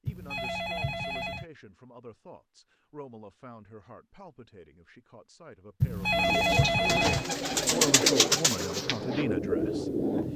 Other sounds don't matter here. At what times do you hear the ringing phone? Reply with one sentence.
The ringing phone can be heard from 0.1 to 1.4 s and from 5.8 to 7.2 s.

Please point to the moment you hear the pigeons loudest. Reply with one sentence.
The loudest moment of the pigeons is at 8 seconds.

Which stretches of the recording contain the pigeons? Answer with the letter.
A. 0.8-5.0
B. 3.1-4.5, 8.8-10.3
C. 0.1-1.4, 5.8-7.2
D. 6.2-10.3
D.